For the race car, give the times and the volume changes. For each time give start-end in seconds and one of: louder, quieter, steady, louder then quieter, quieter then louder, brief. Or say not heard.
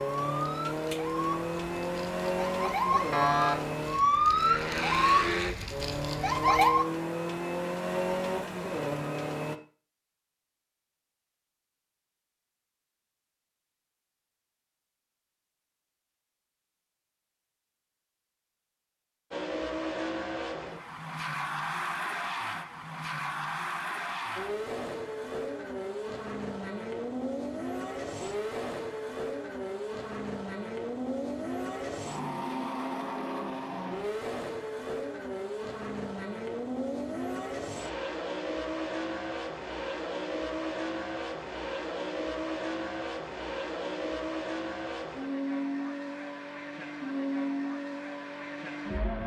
0.0-9.6 steady
19.3-49.2 steady.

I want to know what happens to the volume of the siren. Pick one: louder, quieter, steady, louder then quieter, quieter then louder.
louder then quieter.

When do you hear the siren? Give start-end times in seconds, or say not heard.
0.0-6.8.